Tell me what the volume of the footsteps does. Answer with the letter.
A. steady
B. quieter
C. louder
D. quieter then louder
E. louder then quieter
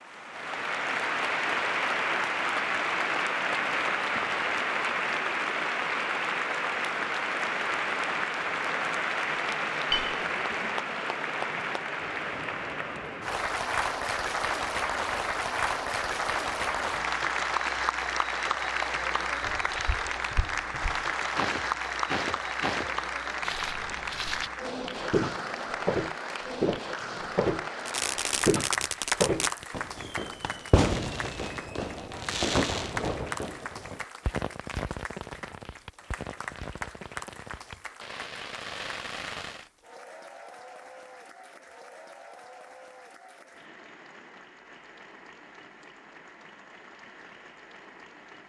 C.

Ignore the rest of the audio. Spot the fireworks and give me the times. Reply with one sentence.
You can hear the fireworks from 27.9 to 39.6 s.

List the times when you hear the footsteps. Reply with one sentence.
You can hear the footsteps from 19.4 to 29.6 s.